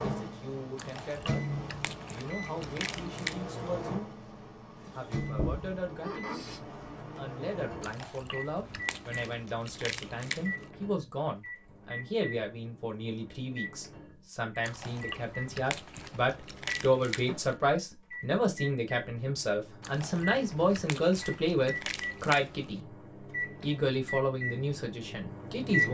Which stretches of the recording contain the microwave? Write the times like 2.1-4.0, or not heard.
0.0-25.8.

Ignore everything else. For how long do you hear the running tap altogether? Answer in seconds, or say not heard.
2 s.